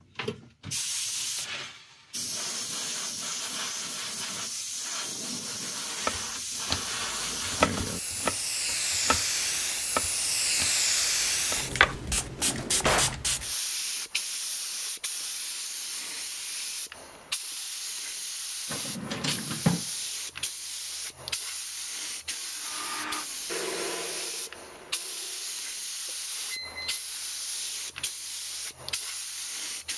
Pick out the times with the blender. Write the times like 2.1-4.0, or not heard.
22.6-25.6.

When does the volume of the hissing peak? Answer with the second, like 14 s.
11 s.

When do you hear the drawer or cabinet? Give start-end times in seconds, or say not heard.
12.3-13.2, 18.7-19.9.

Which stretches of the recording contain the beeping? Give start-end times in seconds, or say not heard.
26.1-27.1.